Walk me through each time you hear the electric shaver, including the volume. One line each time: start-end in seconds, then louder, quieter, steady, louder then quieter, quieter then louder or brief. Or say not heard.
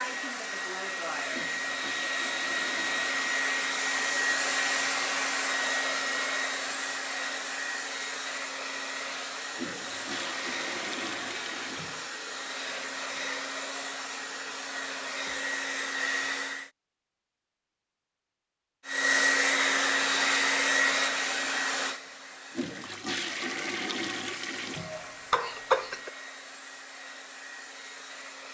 not heard.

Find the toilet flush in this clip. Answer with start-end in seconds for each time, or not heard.
1.3-3.4, 9.6-12.1, 22.5-25.1.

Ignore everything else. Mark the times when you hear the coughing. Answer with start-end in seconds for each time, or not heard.
24.8-26.1.